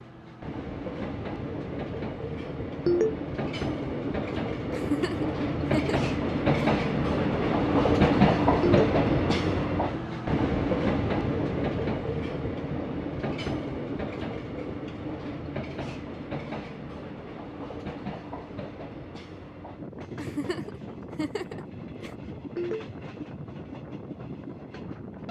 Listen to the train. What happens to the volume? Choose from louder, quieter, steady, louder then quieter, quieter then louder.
louder then quieter.